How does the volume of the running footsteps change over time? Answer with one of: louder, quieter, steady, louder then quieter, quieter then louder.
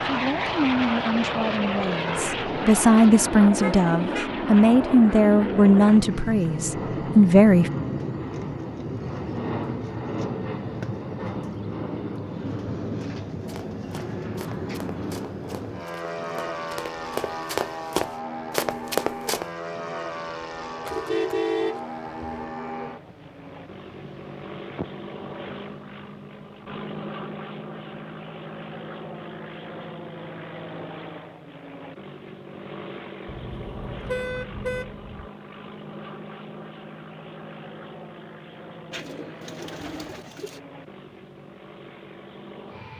louder.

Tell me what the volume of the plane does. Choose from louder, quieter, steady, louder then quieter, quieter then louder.
quieter.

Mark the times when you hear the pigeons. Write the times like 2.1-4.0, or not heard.
38.9-40.6.